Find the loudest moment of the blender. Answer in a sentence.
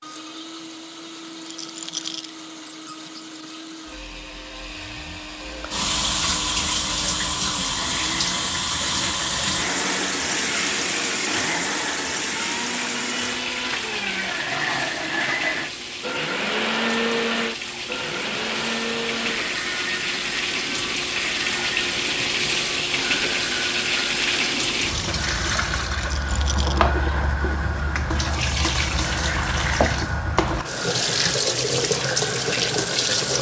The loudest moment of the blender is at 17 seconds.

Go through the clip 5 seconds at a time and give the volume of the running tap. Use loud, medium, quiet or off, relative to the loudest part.
off, loud, loud, medium, loud, loud, loud.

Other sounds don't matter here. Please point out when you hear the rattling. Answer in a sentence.
You can hear the rattling from 1.4 to 2.3 s and from 25.9 to 26.9 s.